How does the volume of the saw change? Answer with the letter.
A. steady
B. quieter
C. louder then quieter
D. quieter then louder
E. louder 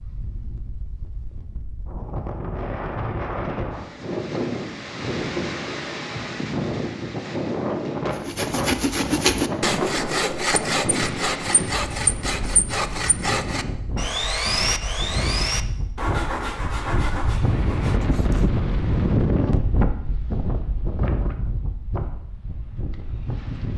B.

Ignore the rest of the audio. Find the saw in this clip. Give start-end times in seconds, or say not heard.
8.1-18.5.